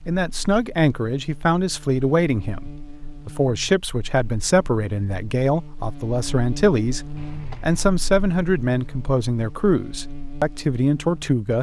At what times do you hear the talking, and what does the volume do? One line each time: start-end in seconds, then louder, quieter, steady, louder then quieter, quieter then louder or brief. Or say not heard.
0.1-11.5 steady.